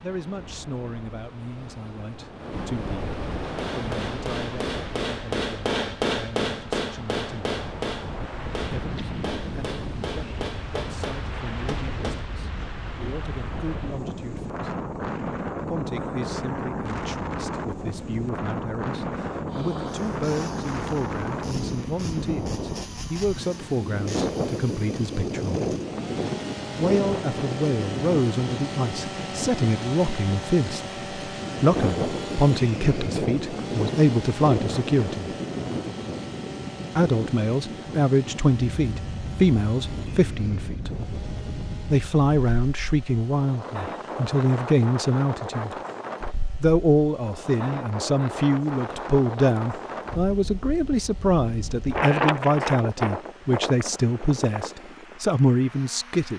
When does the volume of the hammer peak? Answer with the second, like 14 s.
6 s.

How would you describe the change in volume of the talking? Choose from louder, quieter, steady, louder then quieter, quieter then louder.
louder.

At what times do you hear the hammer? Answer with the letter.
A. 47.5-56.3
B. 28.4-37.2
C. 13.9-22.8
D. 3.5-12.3
D.